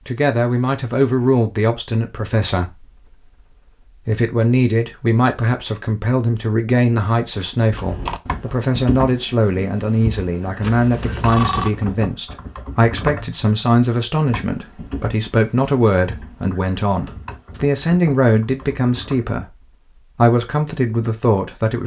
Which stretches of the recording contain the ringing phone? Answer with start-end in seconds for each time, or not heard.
10.6-11.8.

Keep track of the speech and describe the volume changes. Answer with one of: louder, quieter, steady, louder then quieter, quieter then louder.
steady.